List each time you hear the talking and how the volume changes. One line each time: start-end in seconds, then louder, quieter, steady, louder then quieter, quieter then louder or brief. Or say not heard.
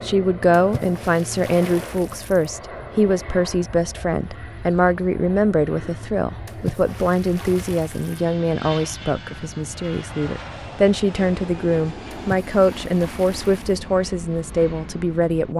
0.0-15.5 steady.